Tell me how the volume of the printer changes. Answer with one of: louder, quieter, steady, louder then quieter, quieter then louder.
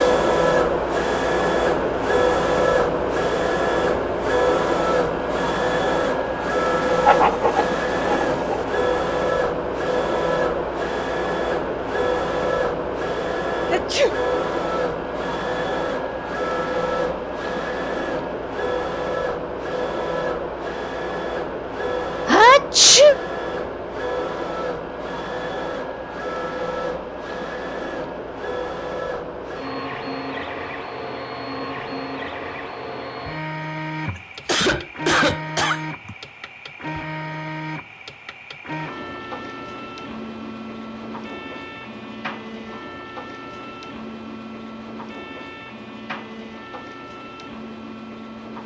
quieter.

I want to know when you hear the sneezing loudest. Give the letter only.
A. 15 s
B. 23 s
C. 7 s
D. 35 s
B.